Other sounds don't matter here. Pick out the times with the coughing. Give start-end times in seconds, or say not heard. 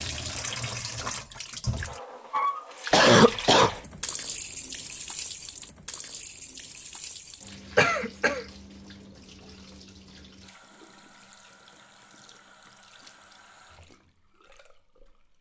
2.9-3.8, 7.8-8.4.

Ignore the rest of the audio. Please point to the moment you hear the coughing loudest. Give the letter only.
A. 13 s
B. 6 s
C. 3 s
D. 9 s
C.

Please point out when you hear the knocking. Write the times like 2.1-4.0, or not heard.
not heard.